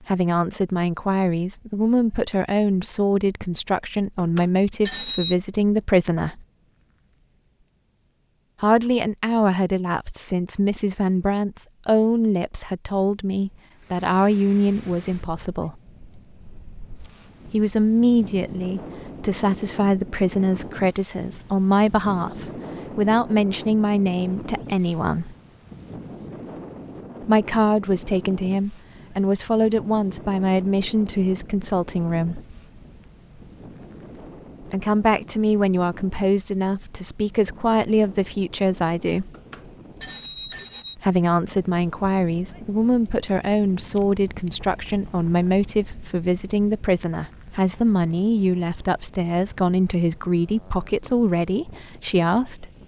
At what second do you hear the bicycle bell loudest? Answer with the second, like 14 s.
5 s.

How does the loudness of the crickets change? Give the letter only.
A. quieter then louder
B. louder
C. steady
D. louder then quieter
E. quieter
B.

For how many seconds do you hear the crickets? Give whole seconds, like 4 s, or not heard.
53 s.